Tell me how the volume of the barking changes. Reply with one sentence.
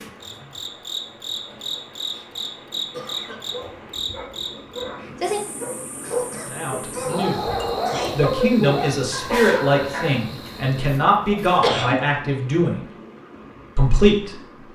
The volume of the barking goes up, then down.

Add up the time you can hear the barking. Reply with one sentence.
The barking can be heard for 8 seconds in total.